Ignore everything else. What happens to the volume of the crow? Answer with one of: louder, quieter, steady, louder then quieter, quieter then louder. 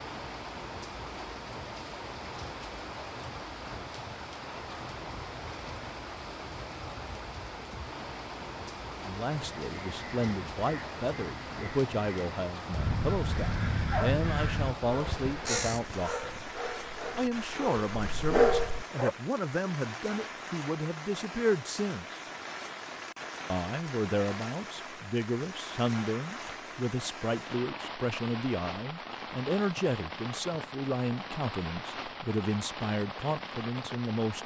louder.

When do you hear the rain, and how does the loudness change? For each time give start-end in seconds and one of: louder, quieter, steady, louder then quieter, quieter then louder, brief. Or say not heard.
0.0-34.4 steady.